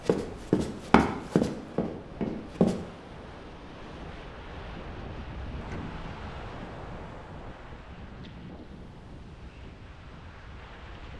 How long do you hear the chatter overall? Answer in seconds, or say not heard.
not heard.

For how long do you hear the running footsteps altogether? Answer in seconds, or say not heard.
3 s.